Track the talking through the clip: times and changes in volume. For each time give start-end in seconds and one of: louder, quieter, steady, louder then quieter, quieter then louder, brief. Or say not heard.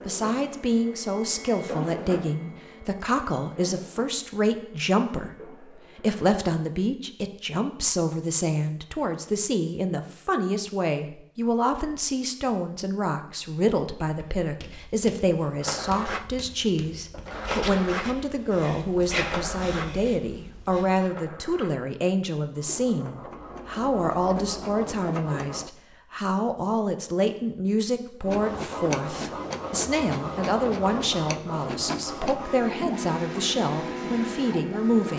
0.1-35.1 steady.